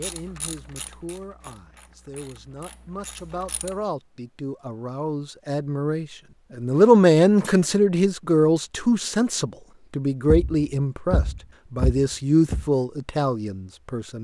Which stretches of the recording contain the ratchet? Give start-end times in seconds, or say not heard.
0.0-3.8.